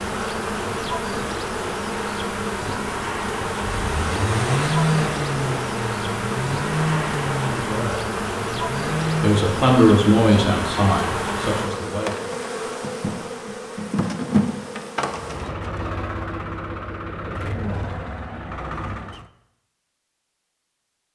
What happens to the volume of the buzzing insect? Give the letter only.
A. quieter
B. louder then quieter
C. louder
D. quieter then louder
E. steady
E.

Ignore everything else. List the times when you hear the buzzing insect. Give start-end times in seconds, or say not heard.
0.0-15.6.